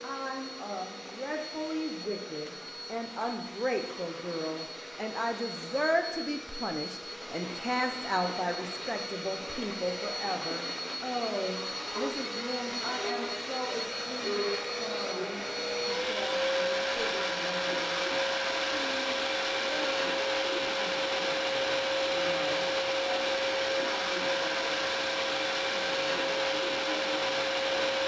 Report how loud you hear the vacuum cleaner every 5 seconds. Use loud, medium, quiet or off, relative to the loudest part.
quiet, medium, medium, loud, loud, loud.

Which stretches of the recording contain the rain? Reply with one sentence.
You can't hear the rain here.